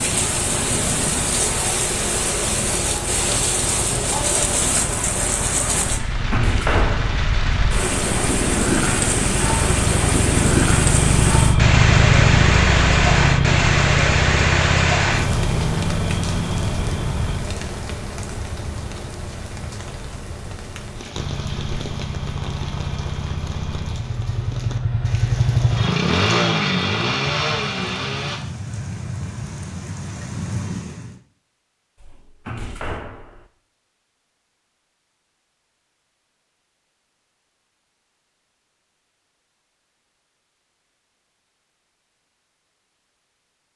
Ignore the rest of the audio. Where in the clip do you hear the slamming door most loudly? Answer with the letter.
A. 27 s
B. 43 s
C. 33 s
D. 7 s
D.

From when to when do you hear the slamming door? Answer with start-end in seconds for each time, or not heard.
6.1-7.2, 32.0-33.5.